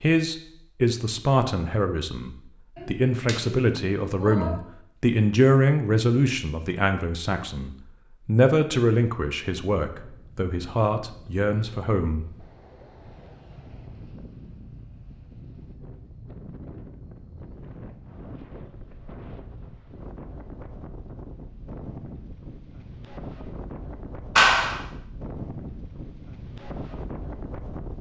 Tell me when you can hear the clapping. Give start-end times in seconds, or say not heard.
2.8-4.6, 24.4-24.8.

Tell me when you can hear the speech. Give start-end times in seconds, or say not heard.
0.0-12.3.